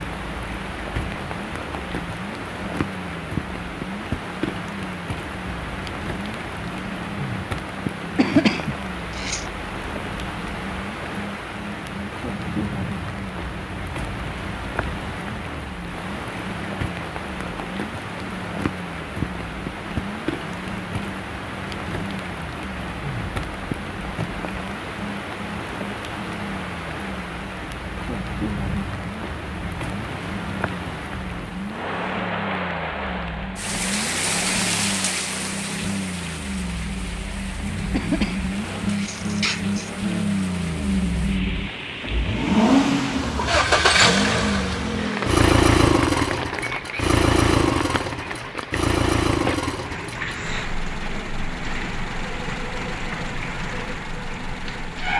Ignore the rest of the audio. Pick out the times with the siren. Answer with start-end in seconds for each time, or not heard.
not heard.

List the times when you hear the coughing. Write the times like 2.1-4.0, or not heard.
8.2-9.4, 37.9-39.9.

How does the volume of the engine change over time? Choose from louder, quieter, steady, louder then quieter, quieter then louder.
louder.